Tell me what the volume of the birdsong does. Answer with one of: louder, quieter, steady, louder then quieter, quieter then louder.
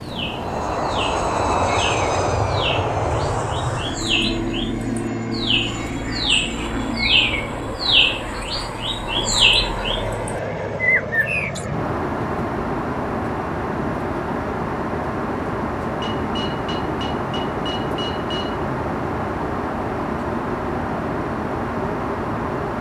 louder.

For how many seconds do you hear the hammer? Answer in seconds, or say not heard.
3 s.